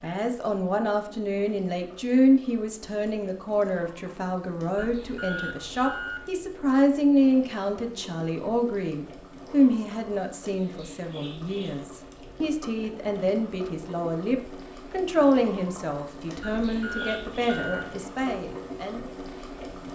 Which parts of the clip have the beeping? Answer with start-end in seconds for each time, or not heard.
4.8-6.3, 16.6-17.9.